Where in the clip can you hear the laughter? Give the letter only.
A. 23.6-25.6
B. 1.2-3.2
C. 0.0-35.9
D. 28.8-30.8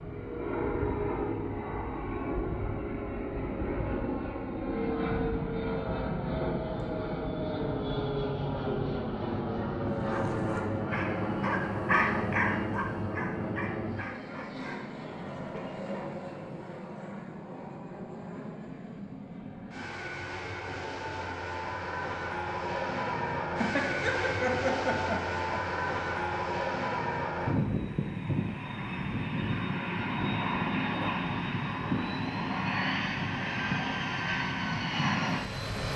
A.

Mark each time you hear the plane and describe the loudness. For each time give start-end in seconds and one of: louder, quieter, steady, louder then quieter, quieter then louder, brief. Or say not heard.
0.0-35.9 quieter then louder.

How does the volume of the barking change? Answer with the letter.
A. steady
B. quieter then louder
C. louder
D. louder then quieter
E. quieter
D.